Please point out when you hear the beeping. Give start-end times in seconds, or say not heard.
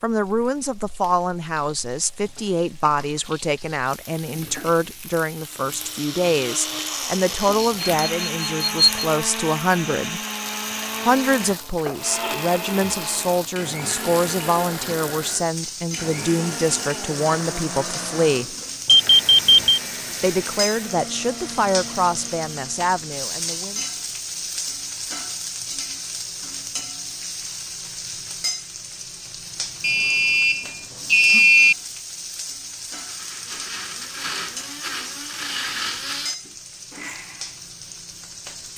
7.6-9.1, 18.9-19.8, 29.8-31.8.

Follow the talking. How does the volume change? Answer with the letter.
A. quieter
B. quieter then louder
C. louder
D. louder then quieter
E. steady
E.